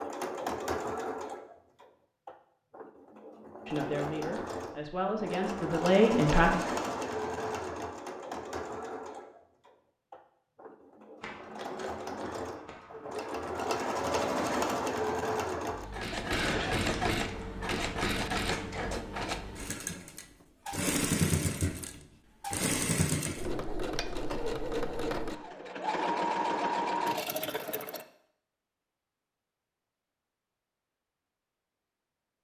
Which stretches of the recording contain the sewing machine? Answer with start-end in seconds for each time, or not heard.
0.0-28.1.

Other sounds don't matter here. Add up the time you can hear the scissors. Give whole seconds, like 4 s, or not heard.
5 s.